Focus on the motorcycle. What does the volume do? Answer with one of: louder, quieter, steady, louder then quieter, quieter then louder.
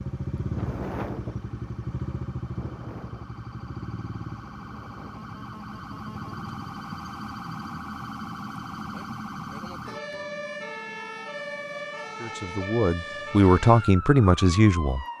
quieter.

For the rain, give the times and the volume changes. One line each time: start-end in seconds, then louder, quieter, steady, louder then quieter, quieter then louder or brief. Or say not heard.
not heard.